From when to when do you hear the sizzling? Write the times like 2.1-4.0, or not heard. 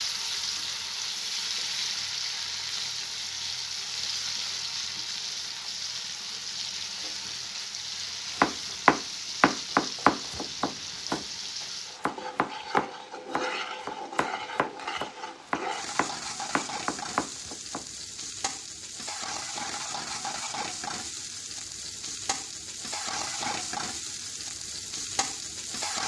0.0-26.0.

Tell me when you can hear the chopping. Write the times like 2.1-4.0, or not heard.
8.4-17.9.